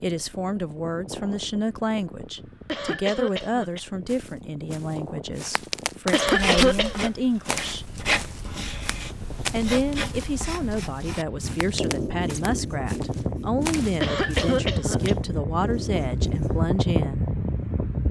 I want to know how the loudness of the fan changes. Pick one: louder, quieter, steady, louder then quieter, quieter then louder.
louder.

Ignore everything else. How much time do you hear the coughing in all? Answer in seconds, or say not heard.
3 s.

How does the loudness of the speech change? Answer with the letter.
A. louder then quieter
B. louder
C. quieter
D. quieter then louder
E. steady
E.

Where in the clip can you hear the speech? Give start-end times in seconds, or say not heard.
0.0-7.8, 9.5-17.2.